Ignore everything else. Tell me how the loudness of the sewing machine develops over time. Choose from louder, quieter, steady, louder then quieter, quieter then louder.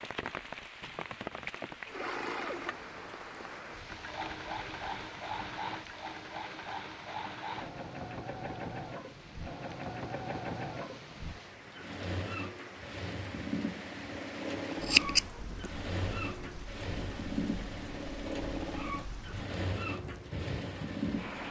steady.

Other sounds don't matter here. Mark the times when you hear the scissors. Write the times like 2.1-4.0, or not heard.
14.8-15.7.